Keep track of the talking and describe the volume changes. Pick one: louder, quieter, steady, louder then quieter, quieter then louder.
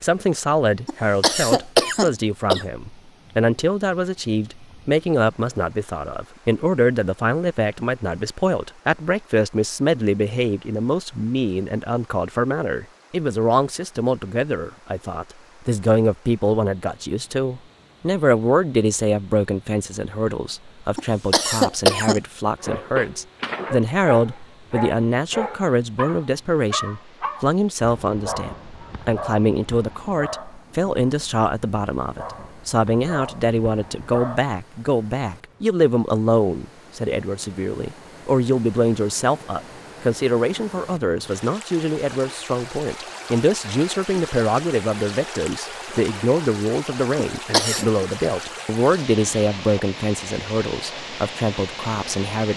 steady.